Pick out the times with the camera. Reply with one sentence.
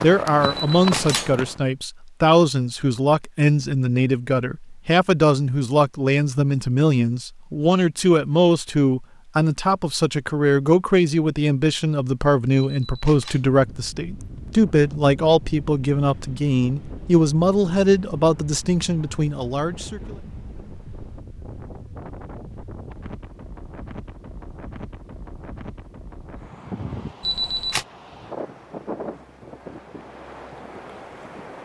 You can hear the camera from 0.4 to 1.4 s, from 12.7 to 13.4 s and from 27.2 to 27.9 s.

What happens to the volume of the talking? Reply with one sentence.
The loudness of the talking stays about the same.